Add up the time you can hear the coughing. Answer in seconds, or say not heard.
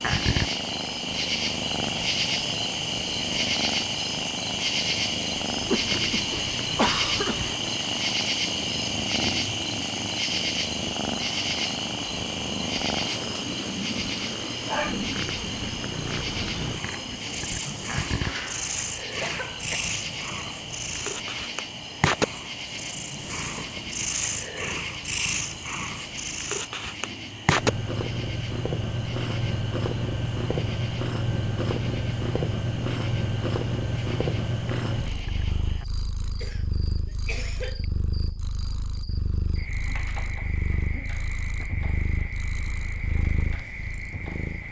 5 s.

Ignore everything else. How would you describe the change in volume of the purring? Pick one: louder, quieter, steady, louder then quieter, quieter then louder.
louder then quieter.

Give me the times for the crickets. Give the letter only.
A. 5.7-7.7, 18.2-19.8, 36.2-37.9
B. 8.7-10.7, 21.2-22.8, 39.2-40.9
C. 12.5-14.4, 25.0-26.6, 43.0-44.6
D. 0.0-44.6
D.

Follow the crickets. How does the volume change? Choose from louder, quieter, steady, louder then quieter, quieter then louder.
quieter.